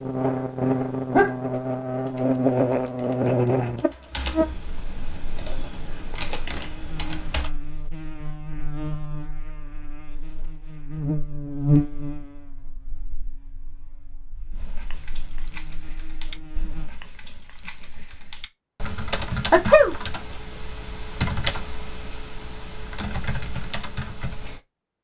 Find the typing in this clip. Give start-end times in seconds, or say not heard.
0.0-7.5, 14.5-24.6.